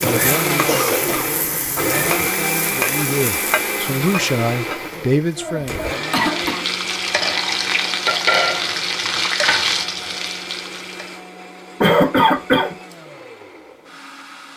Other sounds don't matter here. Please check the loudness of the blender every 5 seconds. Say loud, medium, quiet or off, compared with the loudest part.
loud, medium, quiet.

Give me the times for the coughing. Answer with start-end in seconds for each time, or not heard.
0.7-1.2, 5.3-6.7, 11.8-12.8.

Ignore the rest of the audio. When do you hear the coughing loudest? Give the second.
12 s.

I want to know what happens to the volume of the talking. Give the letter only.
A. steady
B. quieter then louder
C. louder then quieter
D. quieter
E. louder
B.